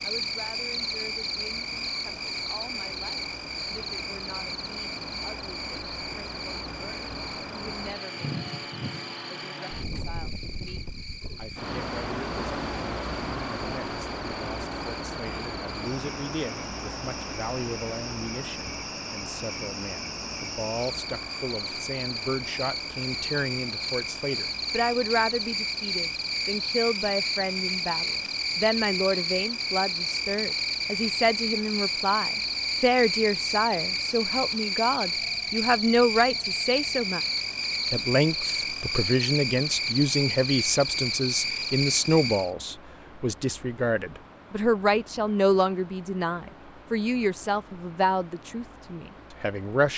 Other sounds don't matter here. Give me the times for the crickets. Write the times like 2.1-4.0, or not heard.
0.0-42.5.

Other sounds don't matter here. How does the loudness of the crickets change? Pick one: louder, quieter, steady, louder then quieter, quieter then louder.
quieter then louder.